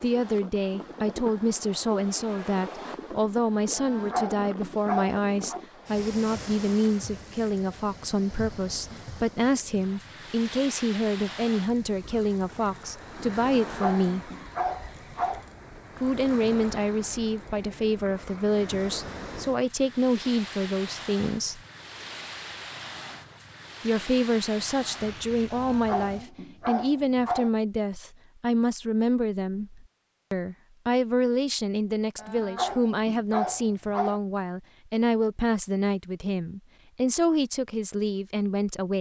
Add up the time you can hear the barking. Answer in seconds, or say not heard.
8 s.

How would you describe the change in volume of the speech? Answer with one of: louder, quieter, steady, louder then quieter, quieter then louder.
steady.